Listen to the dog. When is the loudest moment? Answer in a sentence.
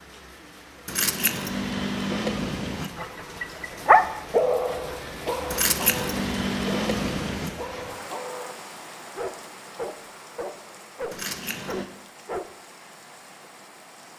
The volume of the dog peaks at 4 seconds.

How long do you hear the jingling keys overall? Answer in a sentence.
The jingling keys can be heard for 5 seconds in total.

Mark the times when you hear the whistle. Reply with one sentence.
The whistle can't be heard in this clip.